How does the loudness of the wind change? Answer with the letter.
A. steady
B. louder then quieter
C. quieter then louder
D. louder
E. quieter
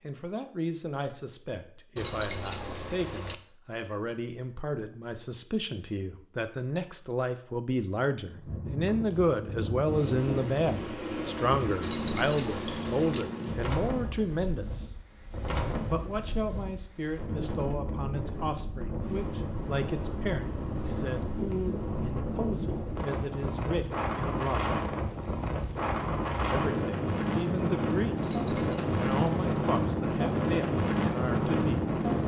D.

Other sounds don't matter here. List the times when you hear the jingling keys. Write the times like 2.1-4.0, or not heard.
1.9-3.4, 11.8-13.2, 28.2-29.6.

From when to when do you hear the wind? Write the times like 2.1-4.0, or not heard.
8.2-32.2.